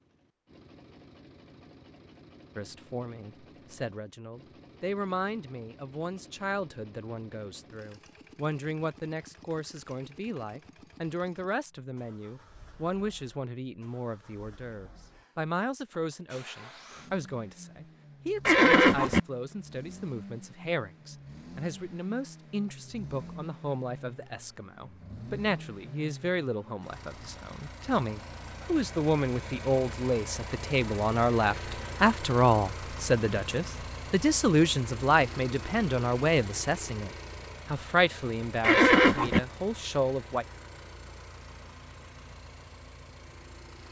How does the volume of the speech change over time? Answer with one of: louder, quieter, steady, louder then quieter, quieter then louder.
louder.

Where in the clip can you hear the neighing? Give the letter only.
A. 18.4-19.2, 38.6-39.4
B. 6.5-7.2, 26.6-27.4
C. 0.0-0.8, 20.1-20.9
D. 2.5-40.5
A.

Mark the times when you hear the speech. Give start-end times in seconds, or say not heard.
2.5-40.5.